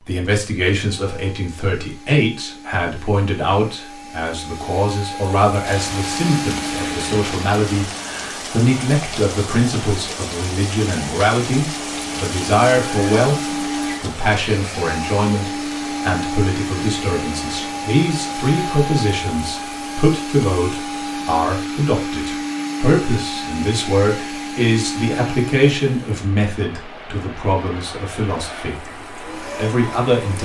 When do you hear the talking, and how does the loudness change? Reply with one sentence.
You can hear the talking from 0.0 to 30.4 s, at a steady volume.